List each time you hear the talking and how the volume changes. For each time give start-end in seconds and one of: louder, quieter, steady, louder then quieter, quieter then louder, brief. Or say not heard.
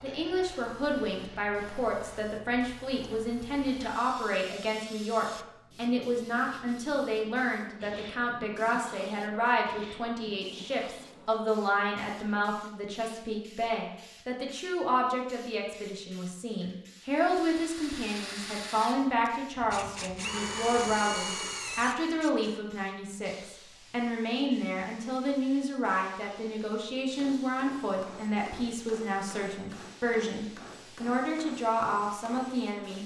0.0-33.0 steady.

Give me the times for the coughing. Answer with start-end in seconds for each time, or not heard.
not heard.